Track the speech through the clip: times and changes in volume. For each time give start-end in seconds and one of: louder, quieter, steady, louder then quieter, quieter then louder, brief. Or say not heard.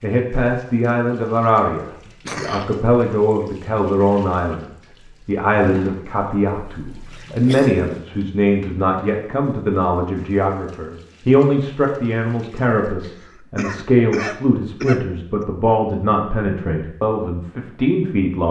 0.0-18.4 steady.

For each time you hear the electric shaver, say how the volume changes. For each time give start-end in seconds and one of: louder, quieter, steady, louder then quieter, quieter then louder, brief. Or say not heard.
not heard.